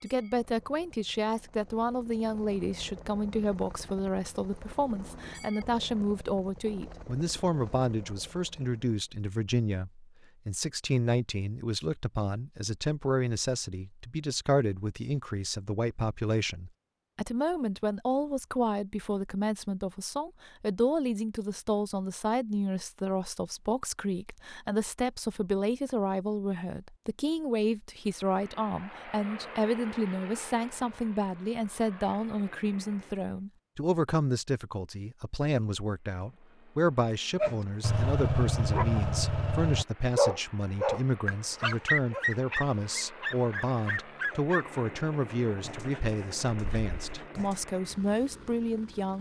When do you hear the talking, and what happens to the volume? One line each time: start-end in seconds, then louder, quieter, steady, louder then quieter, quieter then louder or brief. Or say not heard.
0.0-49.1 steady.